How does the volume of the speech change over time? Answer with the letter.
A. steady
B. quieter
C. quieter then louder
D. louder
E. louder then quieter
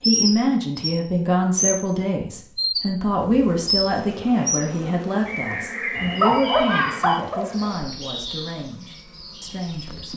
B.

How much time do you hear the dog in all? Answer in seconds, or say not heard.
2 s.